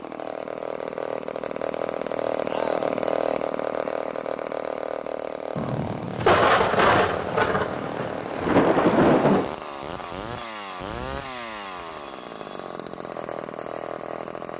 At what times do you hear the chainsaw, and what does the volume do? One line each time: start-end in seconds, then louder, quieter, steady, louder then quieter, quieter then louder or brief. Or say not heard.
0.0-14.5 quieter.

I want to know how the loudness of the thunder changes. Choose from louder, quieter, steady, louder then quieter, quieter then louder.
quieter then louder.